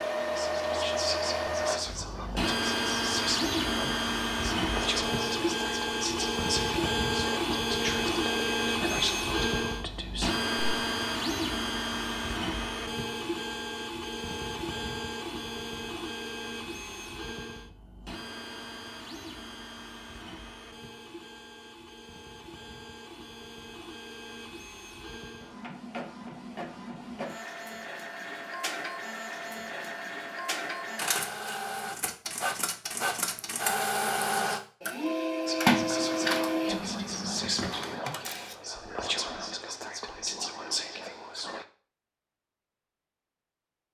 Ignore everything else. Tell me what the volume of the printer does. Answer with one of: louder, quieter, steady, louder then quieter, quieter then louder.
quieter then louder.